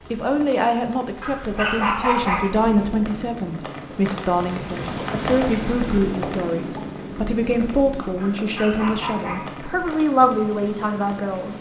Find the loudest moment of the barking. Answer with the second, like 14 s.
2 s.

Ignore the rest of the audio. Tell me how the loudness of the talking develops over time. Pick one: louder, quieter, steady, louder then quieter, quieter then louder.
steady.